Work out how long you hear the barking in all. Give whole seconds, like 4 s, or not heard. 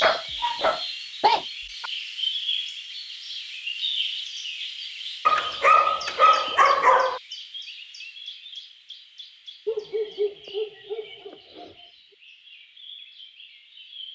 6 s.